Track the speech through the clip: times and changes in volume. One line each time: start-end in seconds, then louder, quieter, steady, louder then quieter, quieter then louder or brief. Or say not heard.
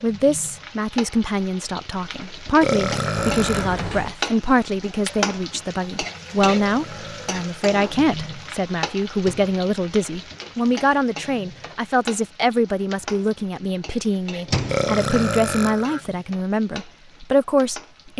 0.0-18.1 steady.